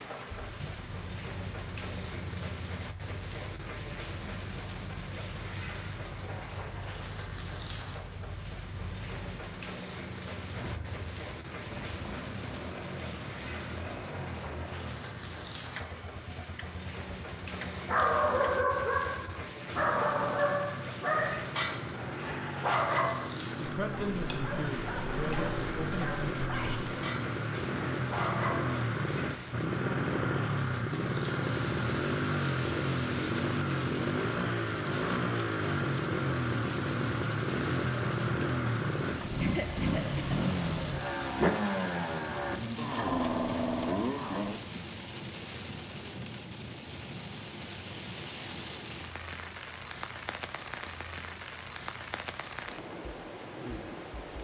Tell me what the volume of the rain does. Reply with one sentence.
The loudness of the rain stays about the same.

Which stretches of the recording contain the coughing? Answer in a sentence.
You can hear the coughing from 39.4 to 40.5 s.